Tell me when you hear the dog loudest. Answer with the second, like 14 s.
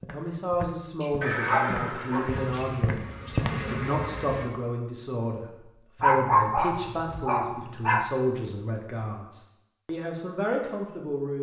6 s.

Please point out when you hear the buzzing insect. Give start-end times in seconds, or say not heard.
2.2-4.5.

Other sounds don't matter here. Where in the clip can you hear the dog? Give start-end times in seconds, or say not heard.
1.0-2.2, 6.0-8.1.